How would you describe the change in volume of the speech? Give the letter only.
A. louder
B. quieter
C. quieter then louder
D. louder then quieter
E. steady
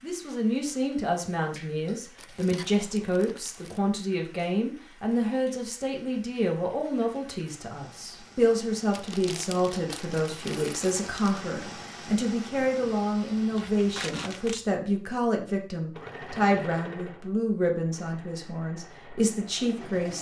E.